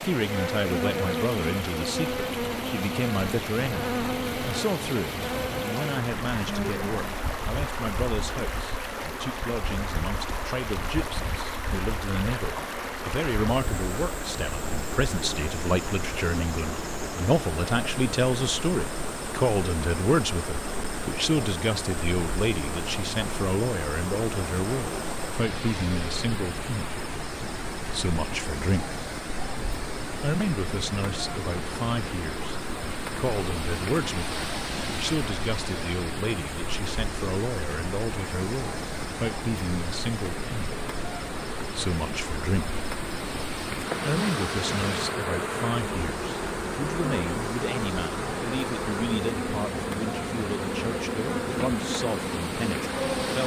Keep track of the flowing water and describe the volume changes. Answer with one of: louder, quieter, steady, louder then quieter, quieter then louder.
steady.